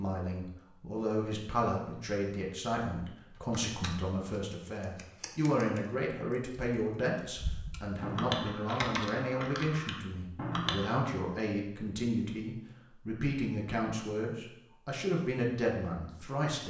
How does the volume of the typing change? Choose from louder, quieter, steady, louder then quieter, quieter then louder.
louder.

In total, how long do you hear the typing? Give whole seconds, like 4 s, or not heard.
8 s.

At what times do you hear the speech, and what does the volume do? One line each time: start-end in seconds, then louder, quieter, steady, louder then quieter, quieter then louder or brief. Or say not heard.
0.0-16.6 steady.